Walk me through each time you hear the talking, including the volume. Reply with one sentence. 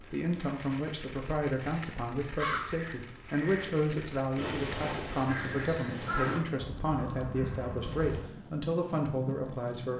The talking can be heard from 0.0 to 9.9 s, at a steady volume.